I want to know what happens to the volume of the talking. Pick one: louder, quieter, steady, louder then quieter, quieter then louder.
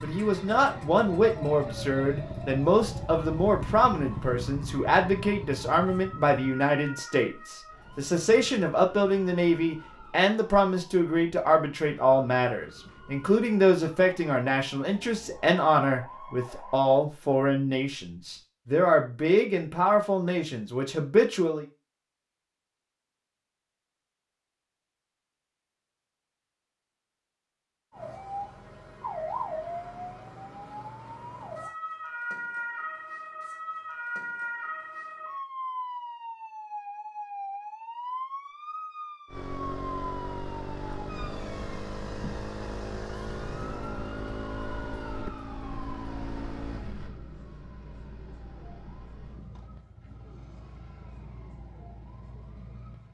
steady.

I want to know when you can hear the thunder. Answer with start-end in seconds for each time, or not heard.
not heard.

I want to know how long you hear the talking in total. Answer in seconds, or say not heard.
22 s.